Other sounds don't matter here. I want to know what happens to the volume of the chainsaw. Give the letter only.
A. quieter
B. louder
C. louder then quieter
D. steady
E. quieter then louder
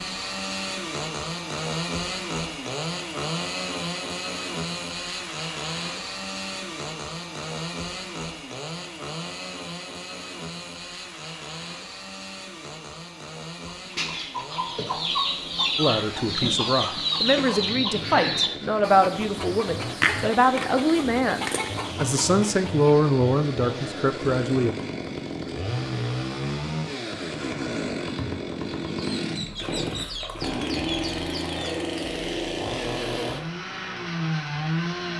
E.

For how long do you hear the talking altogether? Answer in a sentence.
The talking can be heard for 9 seconds in total.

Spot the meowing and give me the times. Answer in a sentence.
The meowing can't be heard in this clip.